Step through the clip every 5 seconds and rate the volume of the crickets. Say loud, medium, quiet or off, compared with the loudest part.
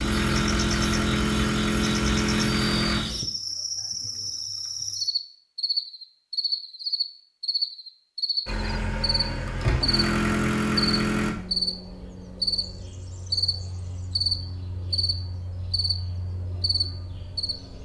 loud, loud, loud, medium.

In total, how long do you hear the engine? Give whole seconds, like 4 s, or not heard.
6 s.